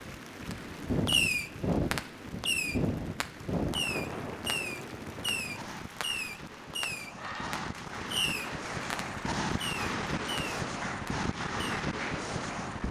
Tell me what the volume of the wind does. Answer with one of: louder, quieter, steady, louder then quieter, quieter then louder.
quieter then louder.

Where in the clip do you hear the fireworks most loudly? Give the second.
1 s.